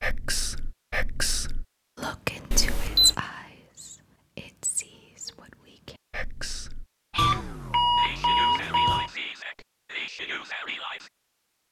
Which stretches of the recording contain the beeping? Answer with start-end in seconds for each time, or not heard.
2.5-3.1, 7.2-9.1.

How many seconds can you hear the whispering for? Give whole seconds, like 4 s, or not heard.
11 s.